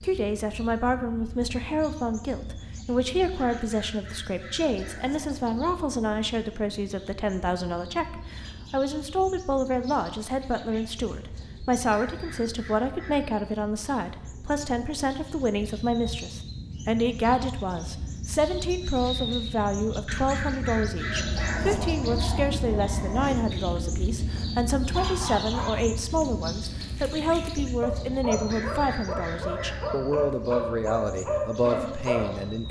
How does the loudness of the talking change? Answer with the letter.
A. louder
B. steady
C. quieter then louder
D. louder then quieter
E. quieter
B.